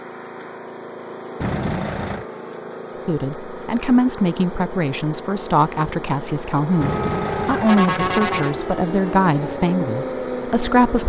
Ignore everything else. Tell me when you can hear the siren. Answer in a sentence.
You can hear the siren from 6.7 to 11.0 s.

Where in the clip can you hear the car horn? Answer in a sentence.
The car horn can be heard from 1.4 to 2.2 s and from 6.8 to 8.6 s.